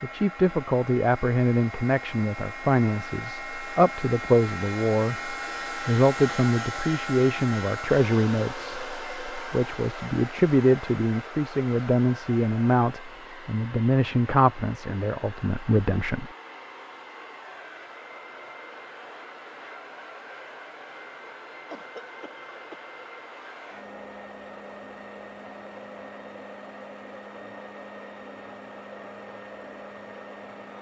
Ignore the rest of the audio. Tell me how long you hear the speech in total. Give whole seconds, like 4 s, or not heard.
16 s.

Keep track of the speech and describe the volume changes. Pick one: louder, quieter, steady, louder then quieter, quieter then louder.
steady.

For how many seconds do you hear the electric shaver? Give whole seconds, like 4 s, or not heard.
not heard.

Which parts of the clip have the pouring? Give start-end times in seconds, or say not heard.
not heard.